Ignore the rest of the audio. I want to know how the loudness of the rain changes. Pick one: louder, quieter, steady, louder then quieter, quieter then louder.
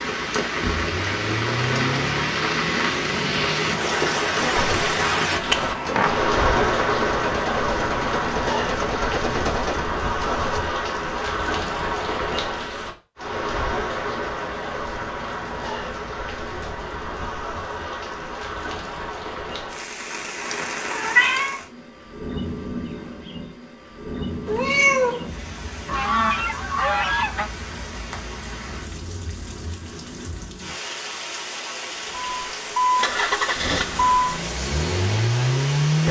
quieter.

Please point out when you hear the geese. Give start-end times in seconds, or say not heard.
25.9-27.5.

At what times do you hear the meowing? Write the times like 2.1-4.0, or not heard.
5.5-6.2, 20.5-21.6, 24.4-25.3.